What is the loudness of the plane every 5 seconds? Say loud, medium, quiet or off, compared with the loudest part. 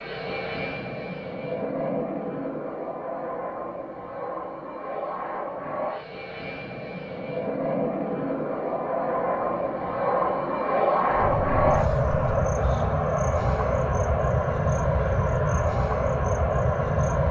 medium, medium, loud, loud.